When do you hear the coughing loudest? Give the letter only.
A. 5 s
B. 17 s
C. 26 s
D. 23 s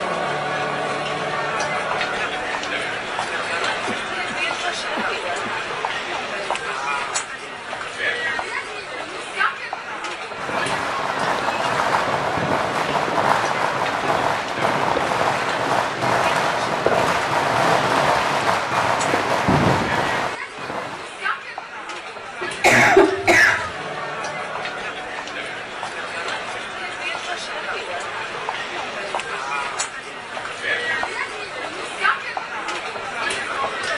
D.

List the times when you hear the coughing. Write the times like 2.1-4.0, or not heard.
3.9-5.7, 22.4-23.7.